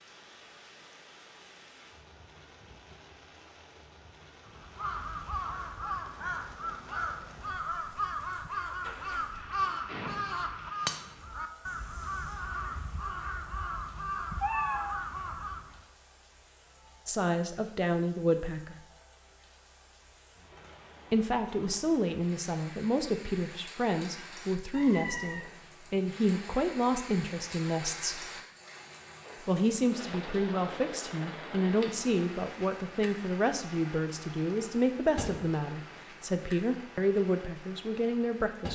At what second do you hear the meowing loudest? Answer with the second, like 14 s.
15 s.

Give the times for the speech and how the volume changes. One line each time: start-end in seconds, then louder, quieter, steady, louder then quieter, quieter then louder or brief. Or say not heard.
17.1-18.8 brief
21.1-28.2 steady
29.4-38.6 steady.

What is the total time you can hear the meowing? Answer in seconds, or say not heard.
2 s.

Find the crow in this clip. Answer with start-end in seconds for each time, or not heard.
4.5-15.8.